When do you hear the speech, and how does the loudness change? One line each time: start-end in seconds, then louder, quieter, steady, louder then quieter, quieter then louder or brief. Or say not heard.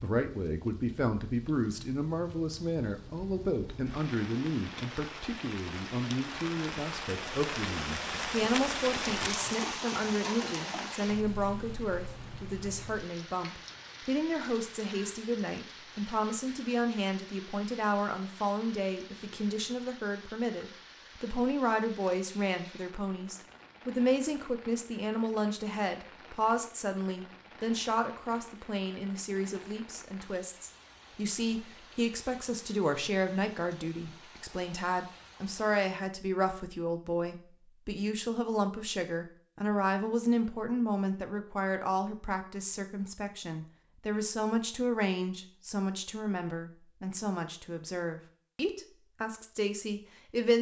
0.0-50.5 steady.